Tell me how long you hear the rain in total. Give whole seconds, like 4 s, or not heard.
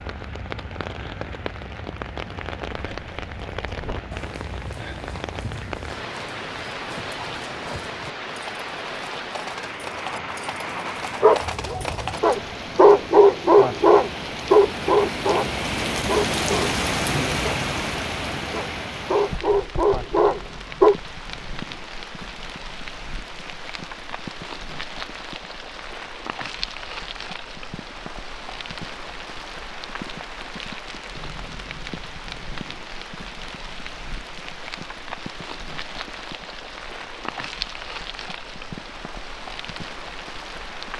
41 s.